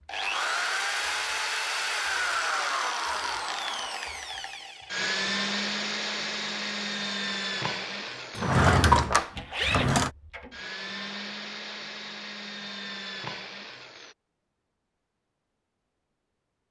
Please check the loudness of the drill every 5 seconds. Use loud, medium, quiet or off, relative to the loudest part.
loud, loud, medium, off.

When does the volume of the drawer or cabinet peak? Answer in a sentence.
The loudest moment of the drawer or cabinet is at 9 seconds.